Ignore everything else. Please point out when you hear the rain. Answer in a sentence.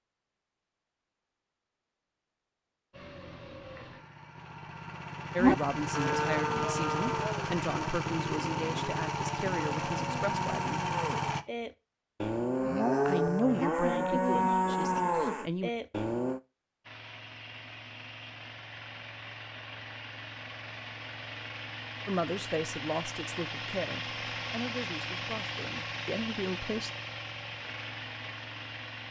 The rain can't be heard in this clip.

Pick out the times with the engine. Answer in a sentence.
The engine can be heard from 2.9 to 11.4 s and from 16.8 to 29.0 s.